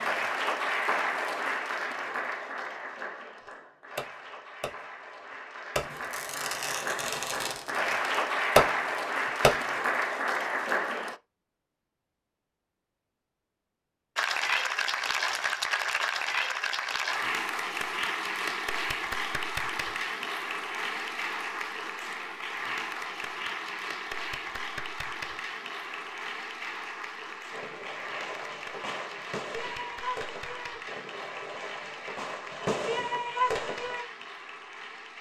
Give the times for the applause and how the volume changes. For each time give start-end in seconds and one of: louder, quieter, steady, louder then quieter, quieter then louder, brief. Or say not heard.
0.0-11.2 quieter then louder
14.2-35.1 quieter.